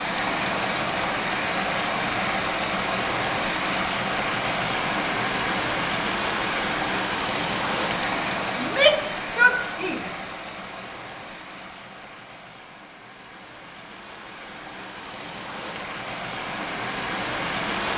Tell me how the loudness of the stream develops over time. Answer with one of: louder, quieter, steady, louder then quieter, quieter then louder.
quieter then louder.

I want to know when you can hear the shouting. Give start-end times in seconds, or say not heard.
8.6-10.1.